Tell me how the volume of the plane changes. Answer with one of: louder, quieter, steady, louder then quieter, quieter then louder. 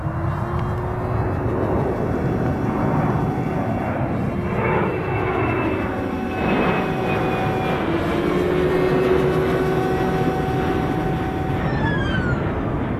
steady.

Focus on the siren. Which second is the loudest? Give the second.
9 s.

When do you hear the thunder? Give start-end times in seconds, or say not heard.
1.6-3.6.